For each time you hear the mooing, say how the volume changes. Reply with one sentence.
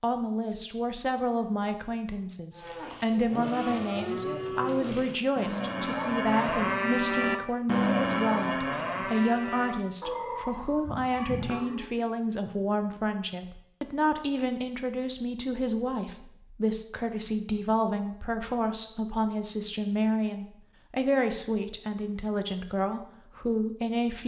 The mooing can be heard from 2.5 to 11.9 s, getting louder then quieter.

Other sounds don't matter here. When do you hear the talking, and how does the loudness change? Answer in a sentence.
The talking can be heard from 0.0 to 24.2 s, at a steady volume.